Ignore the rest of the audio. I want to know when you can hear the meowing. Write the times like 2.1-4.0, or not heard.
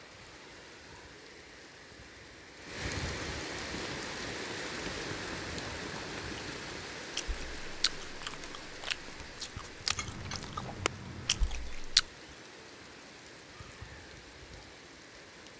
9.9-11.5.